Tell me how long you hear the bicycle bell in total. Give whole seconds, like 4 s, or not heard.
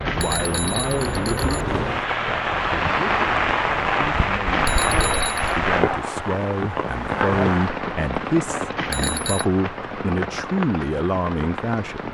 4 s.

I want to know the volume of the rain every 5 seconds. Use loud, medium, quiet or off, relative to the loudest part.
loud, loud, medium.